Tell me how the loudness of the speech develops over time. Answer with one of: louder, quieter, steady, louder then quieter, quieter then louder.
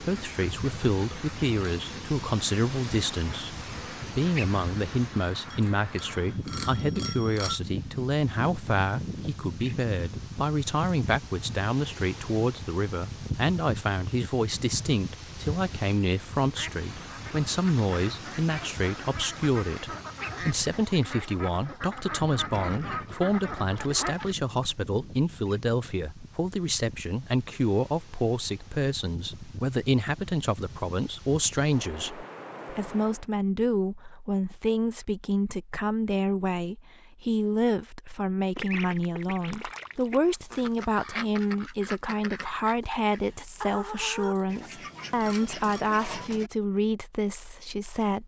steady.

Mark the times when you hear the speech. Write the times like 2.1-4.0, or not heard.
0.0-48.2.